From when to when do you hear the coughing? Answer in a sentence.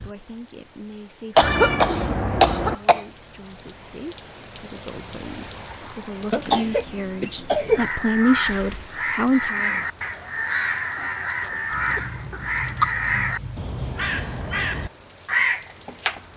You can hear the coughing from 1.4 to 3.0 s, from 6.3 to 7.9 s and from 11.4 to 12.9 s.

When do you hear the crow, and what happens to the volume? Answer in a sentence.
The crow can be heard from 7.8 to 16.2 s, at a steady volume.